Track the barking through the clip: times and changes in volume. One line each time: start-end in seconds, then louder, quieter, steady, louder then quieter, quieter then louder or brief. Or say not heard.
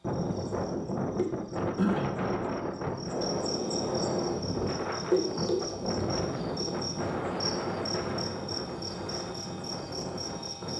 not heard.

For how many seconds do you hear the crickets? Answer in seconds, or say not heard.
11 s.